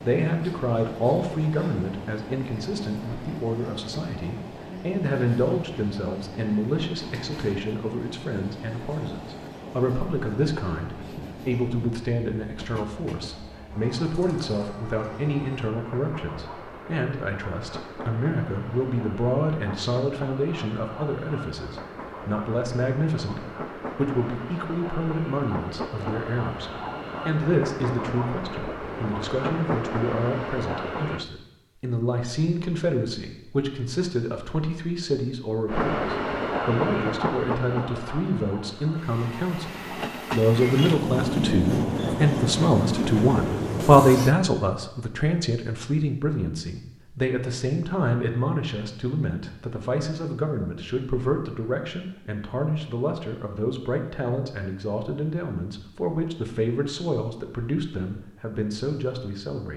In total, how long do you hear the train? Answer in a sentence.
The train can be heard for 40 seconds in total.